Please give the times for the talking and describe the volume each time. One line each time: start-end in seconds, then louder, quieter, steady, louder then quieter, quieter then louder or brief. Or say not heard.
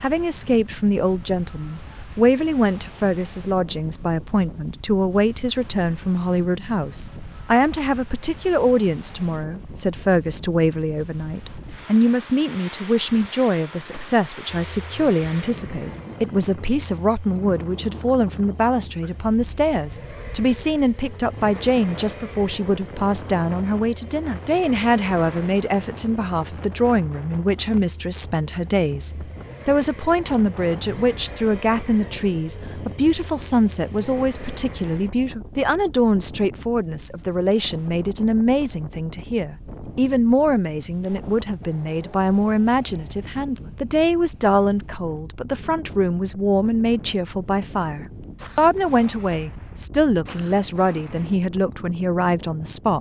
0.0-52.9 steady.